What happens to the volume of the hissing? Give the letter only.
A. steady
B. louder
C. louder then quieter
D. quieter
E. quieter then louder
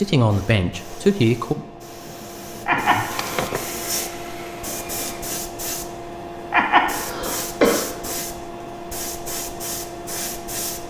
B.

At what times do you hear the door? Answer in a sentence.
You can hear the door from 2.7 to 3.8 s.